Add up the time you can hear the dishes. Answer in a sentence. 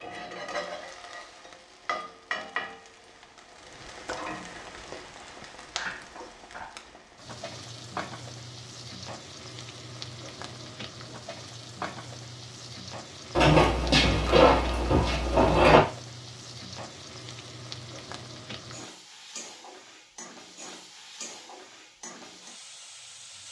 The dishes can't be heard in this clip.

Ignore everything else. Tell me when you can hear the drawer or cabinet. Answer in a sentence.
The drawer or cabinet can be heard from 13.3 to 15.8 s.